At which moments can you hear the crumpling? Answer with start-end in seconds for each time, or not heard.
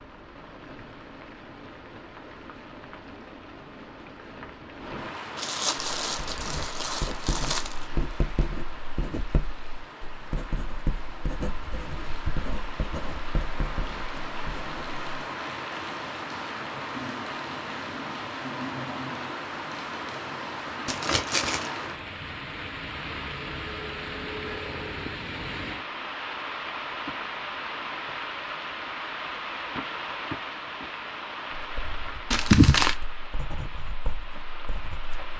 5.3-7.8, 20.9-21.7, 32.3-33.0.